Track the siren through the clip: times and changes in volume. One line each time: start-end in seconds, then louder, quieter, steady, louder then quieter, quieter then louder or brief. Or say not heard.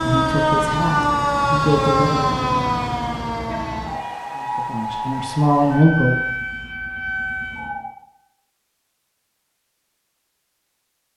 0.0-8.0 quieter.